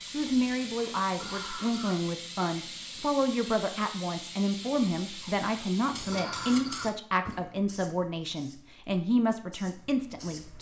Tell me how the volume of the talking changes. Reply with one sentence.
The loudness of the talking stays about the same.